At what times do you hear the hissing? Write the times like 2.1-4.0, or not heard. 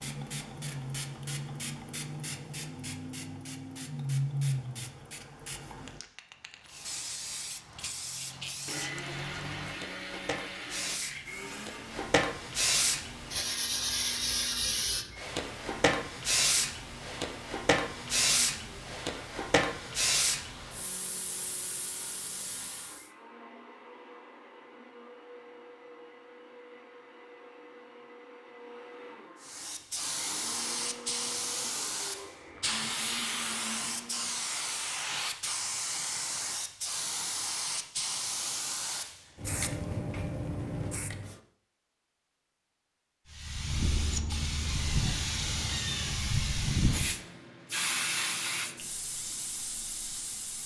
0.0-23.1, 29.4-41.4, 43.3-50.6.